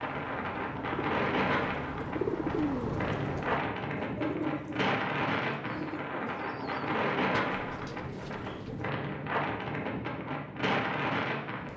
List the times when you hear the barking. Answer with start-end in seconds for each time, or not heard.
not heard.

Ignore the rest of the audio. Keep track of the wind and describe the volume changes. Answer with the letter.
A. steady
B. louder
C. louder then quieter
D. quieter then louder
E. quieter
A.